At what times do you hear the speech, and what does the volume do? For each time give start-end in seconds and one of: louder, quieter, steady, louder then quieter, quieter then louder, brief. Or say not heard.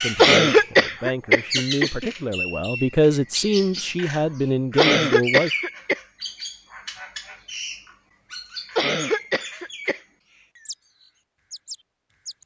0.0-5.5 louder.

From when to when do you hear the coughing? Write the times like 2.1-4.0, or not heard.
0.1-2.1, 4.8-6.0, 8.8-10.0.